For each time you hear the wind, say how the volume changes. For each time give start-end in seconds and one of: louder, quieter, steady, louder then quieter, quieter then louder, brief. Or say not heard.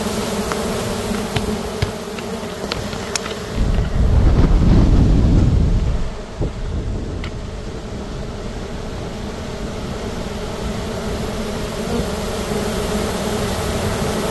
3.5-14.2 quieter.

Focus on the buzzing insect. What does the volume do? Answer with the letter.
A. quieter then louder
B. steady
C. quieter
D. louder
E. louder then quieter
A.